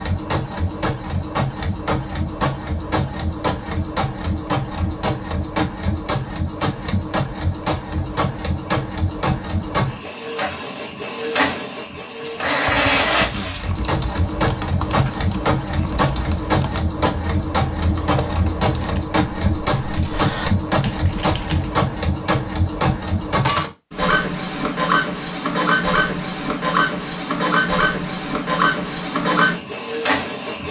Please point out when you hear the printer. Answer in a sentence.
The printer can be heard from 0.0 to 30.6 s.